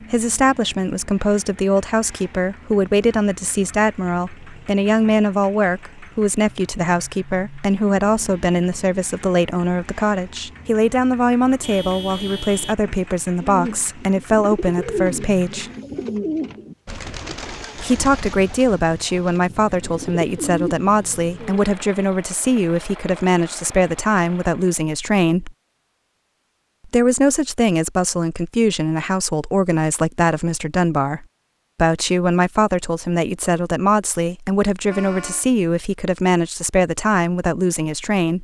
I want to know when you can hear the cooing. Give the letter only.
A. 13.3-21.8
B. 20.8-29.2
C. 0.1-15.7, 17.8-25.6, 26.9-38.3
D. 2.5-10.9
A.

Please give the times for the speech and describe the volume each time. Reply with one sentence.
The speech can be heard from 0.1 to 15.7 s, at a steady volume; from 17.8 to 25.6 s, at a steady volume; and from 26.9 to 38.3 s, at a steady volume.